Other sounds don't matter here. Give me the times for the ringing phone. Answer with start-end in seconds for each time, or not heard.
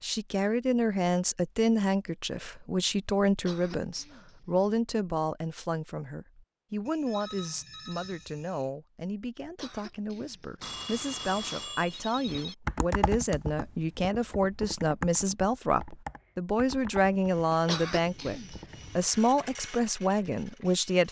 6.8-8.7, 10.6-12.6.